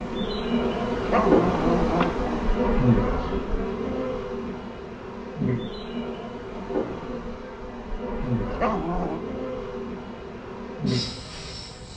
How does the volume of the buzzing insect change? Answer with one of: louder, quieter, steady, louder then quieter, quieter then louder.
quieter.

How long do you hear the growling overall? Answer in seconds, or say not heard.
2 s.